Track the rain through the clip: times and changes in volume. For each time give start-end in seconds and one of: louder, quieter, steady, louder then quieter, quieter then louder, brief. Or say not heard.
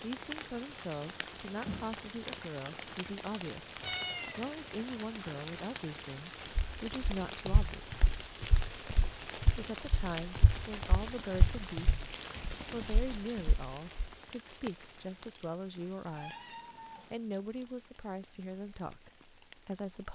0.0-20.1 quieter.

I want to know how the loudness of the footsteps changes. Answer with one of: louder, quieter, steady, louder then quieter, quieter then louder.
quieter.